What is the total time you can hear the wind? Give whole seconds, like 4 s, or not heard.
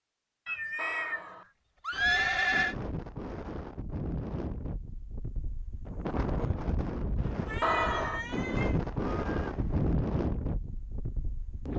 10 s.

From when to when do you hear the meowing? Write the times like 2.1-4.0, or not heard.
0.5-1.5, 7.2-9.9.